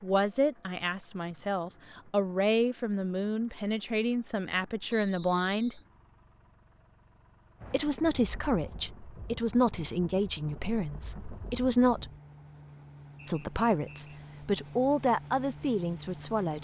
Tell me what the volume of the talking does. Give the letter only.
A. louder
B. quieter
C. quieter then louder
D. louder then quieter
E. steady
E.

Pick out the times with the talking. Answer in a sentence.
You can hear the talking from 0.0 to 5.8 s, from 7.7 to 12.1 s and from 13.2 to 16.6 s.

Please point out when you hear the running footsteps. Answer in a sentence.
You can't hear the running footsteps here.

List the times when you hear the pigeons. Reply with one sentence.
You can't hear the pigeons here.